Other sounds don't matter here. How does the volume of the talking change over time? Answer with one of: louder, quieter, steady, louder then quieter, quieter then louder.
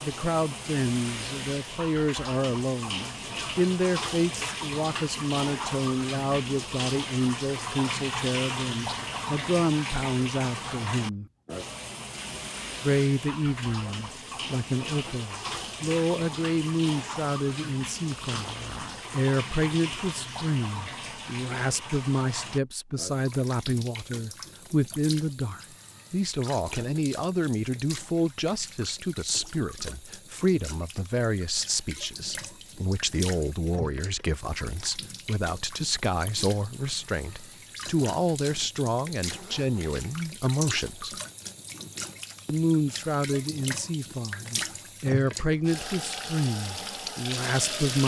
steady.